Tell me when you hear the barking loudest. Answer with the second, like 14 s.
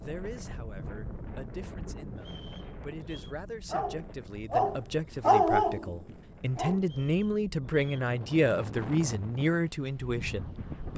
5 s.